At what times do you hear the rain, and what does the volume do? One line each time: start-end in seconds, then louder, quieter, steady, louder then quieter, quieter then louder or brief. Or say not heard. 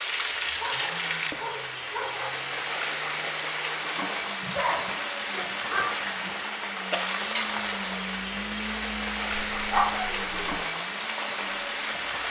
0.0-12.2 steady.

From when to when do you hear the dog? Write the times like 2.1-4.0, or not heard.
0.6-2.3, 4.4-6.3, 9.5-10.6.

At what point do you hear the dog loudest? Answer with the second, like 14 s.
10 s.